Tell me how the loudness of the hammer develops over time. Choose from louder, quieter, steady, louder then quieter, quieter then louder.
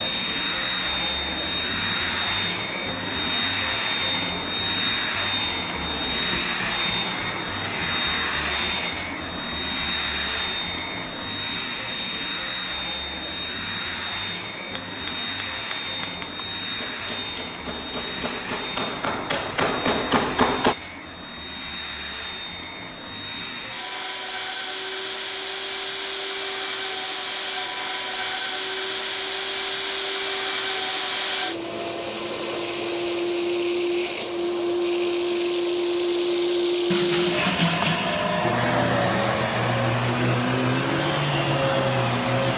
louder.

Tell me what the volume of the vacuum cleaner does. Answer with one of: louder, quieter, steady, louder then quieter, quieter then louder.
quieter then louder.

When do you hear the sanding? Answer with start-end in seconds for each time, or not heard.
36.9-38.5.